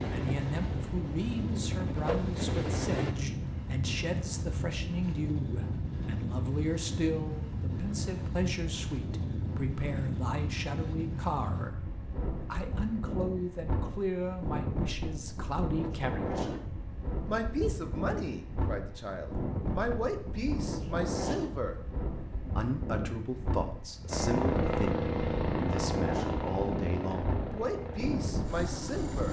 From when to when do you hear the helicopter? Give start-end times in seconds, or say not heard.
0.0-3.1, 24.1-29.2.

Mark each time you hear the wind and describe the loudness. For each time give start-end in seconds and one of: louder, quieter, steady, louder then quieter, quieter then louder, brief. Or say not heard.
0.0-29.2 steady.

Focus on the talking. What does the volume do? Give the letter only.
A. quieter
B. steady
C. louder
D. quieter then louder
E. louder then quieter
B.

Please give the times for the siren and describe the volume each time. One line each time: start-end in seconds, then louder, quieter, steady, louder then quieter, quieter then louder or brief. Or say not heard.
not heard.